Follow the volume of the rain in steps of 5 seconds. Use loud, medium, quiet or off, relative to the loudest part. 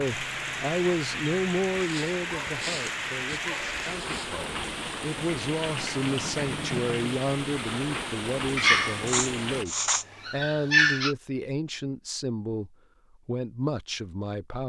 loud, loud, off.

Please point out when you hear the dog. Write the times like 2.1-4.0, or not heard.
1.7-4.5, 8.6-11.2.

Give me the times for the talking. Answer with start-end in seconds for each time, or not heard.
0.0-14.6.